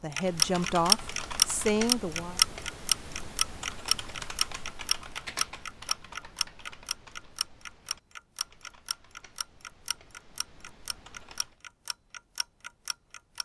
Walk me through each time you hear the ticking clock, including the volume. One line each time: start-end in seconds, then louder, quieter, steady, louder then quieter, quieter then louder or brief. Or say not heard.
0.1-13.4 quieter.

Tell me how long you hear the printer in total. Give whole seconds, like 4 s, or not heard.
not heard.